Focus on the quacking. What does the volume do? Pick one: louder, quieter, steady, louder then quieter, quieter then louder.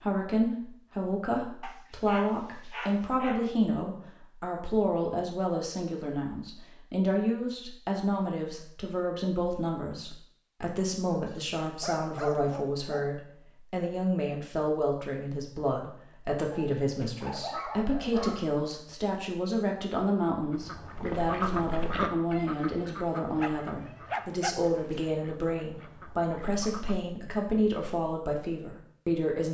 quieter.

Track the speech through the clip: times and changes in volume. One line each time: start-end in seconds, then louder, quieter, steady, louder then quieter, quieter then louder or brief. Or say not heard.
0.0-29.4 steady.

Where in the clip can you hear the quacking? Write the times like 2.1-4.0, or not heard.
20.5-27.1.